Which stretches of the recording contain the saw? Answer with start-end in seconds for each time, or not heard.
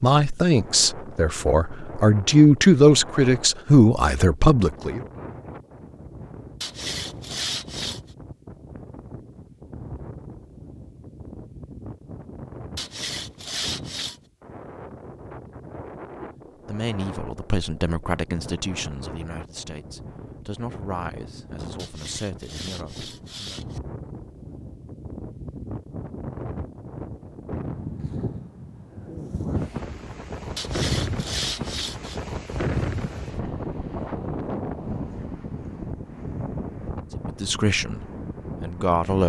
6.6-8.0, 12.8-14.2, 21.8-23.8, 30.6-32.2.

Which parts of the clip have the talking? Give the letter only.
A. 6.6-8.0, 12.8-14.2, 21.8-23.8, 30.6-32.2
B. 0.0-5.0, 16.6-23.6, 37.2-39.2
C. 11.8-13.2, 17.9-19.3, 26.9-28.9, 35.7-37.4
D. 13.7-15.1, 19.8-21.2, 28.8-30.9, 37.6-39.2
B.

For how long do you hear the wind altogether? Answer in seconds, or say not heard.
39 s.